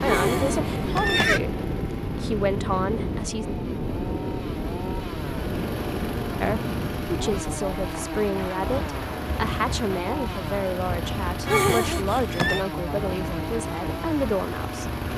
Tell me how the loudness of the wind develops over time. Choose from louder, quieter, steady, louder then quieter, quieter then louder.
quieter.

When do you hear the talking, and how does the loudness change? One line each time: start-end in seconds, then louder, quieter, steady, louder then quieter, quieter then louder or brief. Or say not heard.
0.0-1.5 brief
2.1-3.5 brief
6.4-14.8 steady.